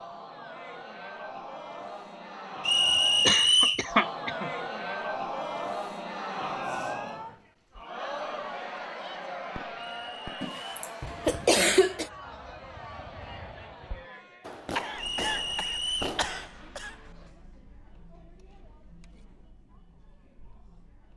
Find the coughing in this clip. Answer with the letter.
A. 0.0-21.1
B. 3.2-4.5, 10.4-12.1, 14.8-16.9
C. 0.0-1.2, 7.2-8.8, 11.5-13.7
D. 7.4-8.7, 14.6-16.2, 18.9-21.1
B.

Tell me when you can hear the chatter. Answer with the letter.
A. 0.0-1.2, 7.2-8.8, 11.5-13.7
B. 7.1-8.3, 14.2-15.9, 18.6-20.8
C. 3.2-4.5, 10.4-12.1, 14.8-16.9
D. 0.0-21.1
D.